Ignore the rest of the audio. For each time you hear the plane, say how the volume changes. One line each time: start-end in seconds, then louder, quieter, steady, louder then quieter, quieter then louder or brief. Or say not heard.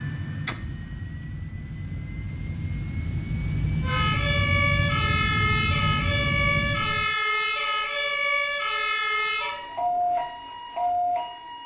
0.0-7.2 louder.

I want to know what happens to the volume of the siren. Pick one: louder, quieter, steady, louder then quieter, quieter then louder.
steady.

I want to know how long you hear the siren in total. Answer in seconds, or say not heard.
8 s.